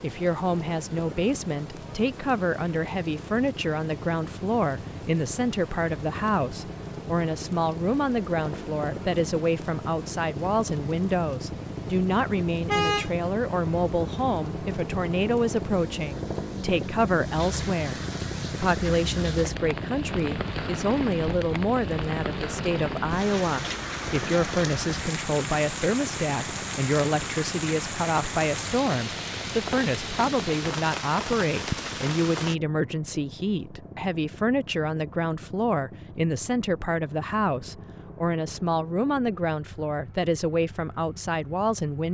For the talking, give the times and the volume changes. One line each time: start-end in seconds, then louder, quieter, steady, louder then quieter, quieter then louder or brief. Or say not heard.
0.0-42.0 steady.